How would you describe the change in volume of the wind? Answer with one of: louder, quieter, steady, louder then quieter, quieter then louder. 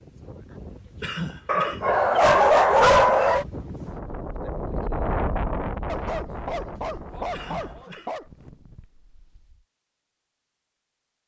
louder then quieter.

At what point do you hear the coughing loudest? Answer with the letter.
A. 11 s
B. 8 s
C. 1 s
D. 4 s
C.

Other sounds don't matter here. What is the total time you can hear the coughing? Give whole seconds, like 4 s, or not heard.
2 s.